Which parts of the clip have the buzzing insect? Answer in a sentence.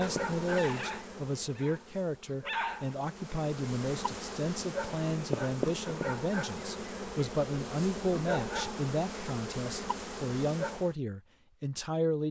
You can hear the buzzing insect from 0.0 to 10.9 s.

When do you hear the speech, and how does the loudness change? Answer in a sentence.
You can hear the speech from 0.0 to 12.2 s, at a steady volume.